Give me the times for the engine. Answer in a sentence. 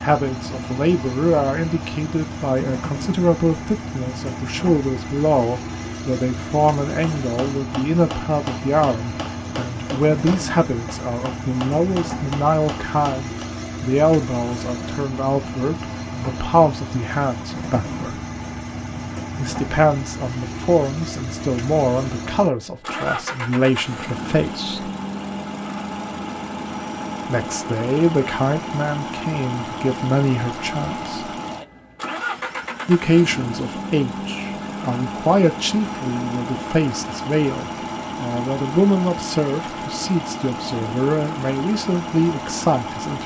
The engine can be heard from 0.0 to 43.2 s.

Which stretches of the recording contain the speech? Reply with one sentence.
You can hear the speech from 0.0 to 18.2 s, from 19.4 to 24.9 s, from 27.2 to 31.4 s and from 32.9 to 43.2 s.